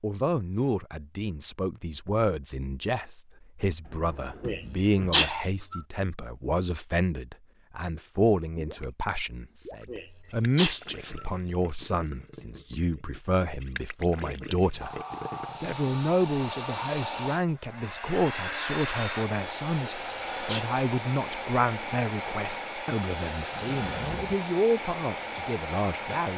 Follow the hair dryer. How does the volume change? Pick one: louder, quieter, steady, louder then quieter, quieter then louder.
steady.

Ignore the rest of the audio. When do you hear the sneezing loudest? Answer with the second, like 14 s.
5 s.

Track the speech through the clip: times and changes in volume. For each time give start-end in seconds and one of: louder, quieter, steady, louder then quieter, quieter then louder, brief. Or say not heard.
0.0-26.3 steady.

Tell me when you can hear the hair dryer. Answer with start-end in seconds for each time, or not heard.
14.8-26.3.